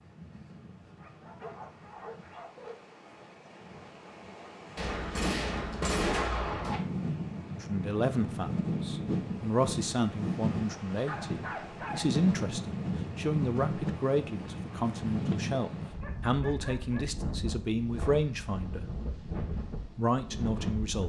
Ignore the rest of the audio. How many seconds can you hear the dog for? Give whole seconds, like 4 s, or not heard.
5 s.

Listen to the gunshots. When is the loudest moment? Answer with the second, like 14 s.
6 s.